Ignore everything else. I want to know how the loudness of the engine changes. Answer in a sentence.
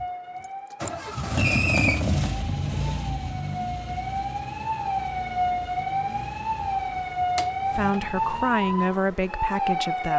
The volume of the engine goes down.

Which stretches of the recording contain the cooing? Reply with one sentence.
The cooing can't be heard in this clip.